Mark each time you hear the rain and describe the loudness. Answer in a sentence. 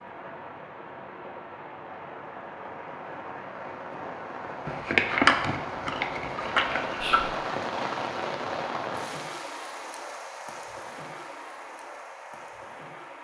The rain can be heard from 0.0 to 13.1 s, getting louder then quieter.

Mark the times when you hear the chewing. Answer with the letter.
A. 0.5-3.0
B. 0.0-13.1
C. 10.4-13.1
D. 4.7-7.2
D.